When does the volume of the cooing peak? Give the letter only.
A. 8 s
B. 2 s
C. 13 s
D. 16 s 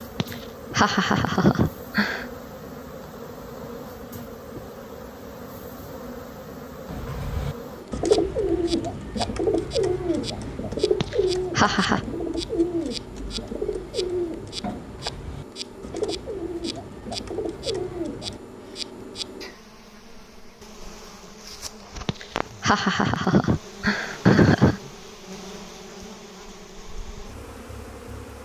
A.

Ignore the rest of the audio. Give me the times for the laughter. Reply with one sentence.
The laughter can be heard from 0.2 to 2.2 s, from 11.0 to 12.1 s and from 22.1 to 24.8 s.